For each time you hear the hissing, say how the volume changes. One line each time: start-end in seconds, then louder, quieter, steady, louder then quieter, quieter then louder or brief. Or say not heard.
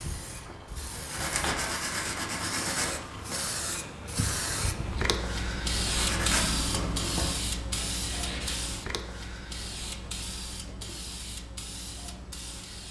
0.0-12.8 louder then quieter.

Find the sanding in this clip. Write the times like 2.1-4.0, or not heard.
0.2-3.5, 5.8-8.7.